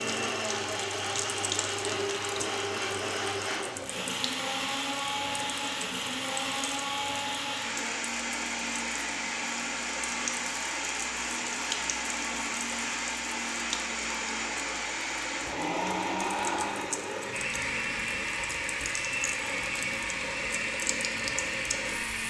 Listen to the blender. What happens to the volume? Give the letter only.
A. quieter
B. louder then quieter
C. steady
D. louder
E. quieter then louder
C.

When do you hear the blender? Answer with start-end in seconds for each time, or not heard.
0.0-22.2.